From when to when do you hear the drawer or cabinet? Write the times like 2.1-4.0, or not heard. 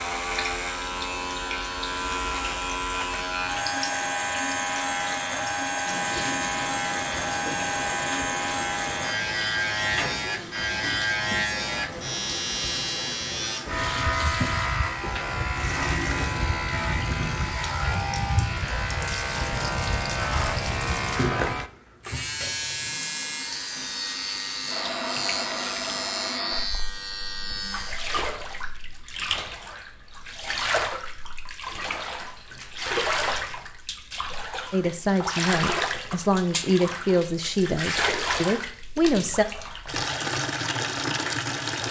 not heard.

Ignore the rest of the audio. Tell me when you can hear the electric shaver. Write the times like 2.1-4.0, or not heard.
0.0-28.1.